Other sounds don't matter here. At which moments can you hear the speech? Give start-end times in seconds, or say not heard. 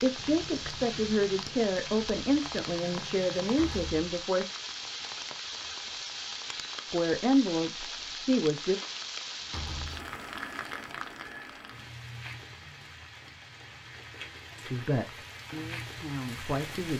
0.0-4.5, 6.9-8.8, 14.7-16.9.